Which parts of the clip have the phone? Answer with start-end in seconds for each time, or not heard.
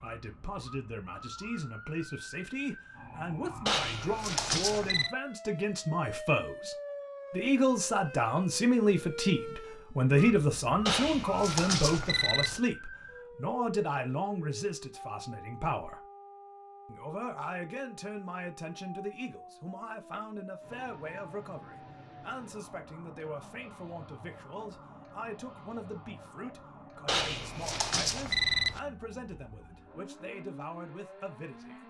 3.6-5.2, 10.8-12.6, 27.1-28.8.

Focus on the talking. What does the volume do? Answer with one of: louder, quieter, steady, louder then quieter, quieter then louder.
louder then quieter.